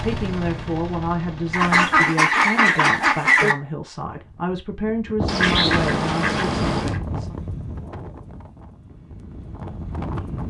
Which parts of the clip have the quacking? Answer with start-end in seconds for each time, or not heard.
1.5-3.5, 5.2-7.0.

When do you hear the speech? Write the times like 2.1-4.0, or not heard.
0.0-7.3.